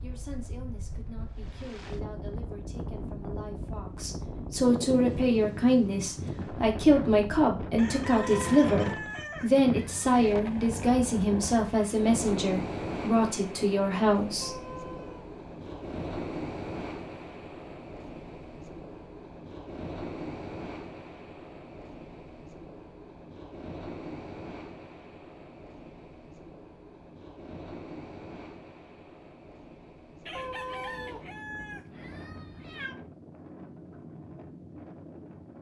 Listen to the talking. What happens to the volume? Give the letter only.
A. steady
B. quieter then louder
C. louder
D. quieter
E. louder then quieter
C.